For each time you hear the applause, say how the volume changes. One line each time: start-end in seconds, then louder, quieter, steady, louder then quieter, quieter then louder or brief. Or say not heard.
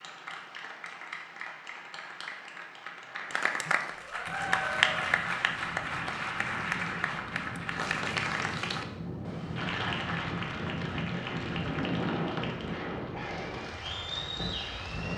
0.0-15.1 louder then quieter.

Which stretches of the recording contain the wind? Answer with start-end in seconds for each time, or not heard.
4.2-15.1.